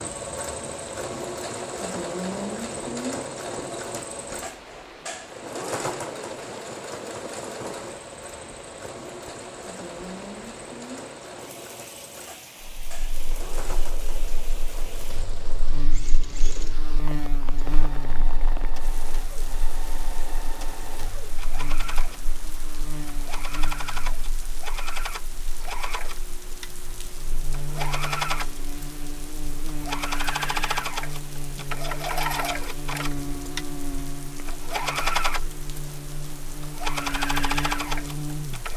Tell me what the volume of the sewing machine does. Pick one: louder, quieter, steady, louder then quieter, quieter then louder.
quieter then louder.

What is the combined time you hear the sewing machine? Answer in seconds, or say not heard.
39 s.